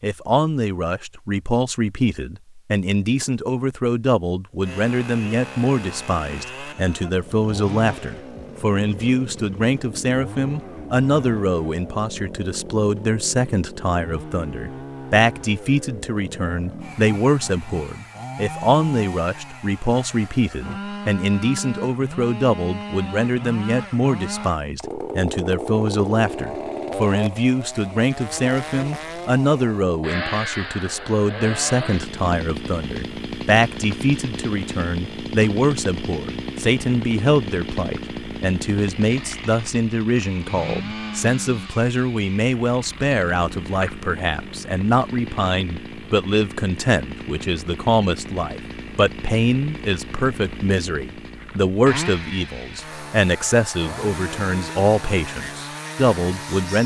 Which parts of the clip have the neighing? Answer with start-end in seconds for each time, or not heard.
not heard.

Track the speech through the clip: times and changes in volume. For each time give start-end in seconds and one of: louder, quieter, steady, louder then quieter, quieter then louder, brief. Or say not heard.
0.0-56.8 steady.